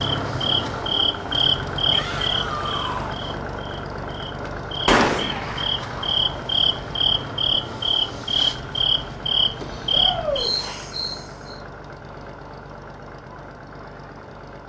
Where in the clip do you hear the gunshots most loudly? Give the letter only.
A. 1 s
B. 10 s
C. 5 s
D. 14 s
C.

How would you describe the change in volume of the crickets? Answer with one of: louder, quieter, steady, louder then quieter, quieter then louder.
quieter then louder.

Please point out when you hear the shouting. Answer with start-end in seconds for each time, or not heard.
1.9-3.2, 5.0-5.5, 9.9-10.5.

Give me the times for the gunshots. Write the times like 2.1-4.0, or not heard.
4.5-6.2.